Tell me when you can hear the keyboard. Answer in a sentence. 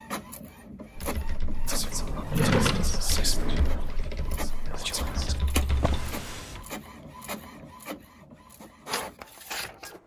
You can hear the keyboard from 0.9 to 6.4 s.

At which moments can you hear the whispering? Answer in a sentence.
The whispering can be heard from 1.6 to 5.4 s.